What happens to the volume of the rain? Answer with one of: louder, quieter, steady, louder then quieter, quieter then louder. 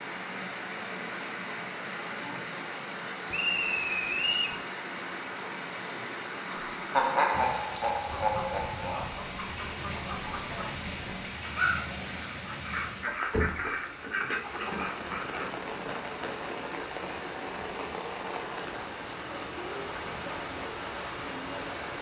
steady.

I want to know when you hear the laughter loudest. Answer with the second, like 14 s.
7 s.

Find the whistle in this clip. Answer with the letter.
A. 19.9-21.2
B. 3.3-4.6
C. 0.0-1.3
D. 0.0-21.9
B.